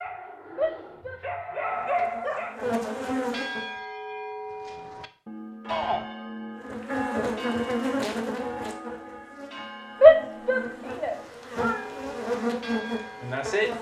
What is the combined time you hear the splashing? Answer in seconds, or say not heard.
not heard.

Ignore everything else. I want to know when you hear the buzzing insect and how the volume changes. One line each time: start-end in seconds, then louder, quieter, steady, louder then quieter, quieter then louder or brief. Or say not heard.
1.7-3.8 brief
6.5-13.7 quieter then louder.